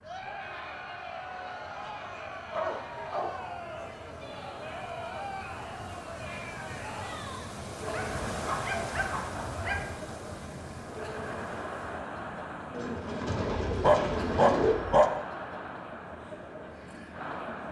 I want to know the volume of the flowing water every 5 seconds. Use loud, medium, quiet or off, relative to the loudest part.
medium, loud, loud, medium.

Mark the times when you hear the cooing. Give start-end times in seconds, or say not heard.
12.7-14.8.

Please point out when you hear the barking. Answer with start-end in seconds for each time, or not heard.
1.3-1.9, 2.5-3.3, 7.8-9.8, 13.7-15.1.